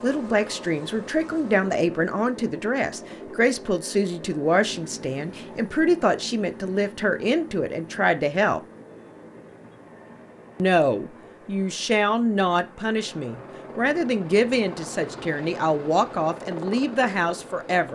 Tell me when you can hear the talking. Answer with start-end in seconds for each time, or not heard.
0.0-8.6, 10.6-17.9.